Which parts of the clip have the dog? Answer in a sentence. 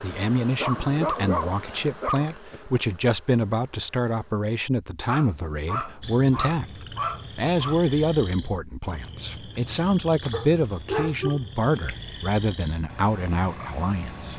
The dog can be heard from 0.6 to 2.6 s, from 5.0 to 7.8 s and from 10.3 to 11.9 s.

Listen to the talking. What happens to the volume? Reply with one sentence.
The volume of the talking stays about the same.